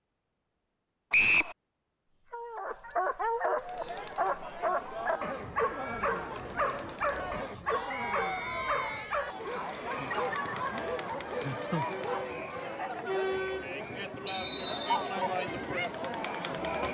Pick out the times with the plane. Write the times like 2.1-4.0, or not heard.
not heard.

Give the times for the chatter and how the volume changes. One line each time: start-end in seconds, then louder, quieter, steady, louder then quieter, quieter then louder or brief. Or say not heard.
3.5-16.9 louder.